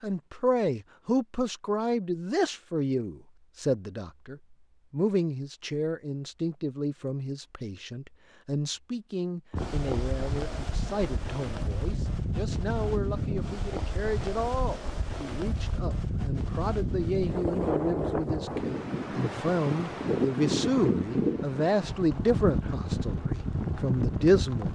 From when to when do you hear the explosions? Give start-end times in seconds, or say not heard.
not heard.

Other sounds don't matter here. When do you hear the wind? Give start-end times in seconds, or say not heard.
9.5-24.7.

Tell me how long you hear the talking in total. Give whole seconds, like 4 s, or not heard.
25 s.